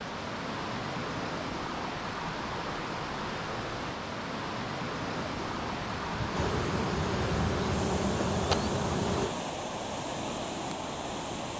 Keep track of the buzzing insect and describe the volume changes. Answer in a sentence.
The loudness of the buzzing insect goes up.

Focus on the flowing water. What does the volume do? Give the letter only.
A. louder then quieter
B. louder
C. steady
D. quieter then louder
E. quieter
C.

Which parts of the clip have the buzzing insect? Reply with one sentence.
You can hear the buzzing insect from 5.2 to 9.3 s.